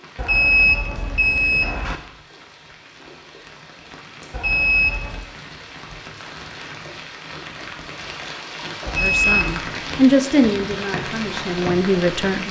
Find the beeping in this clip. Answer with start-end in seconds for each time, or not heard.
0.1-1.9, 4.3-5.2, 8.8-9.6.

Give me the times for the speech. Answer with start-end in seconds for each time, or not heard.
9.0-12.4.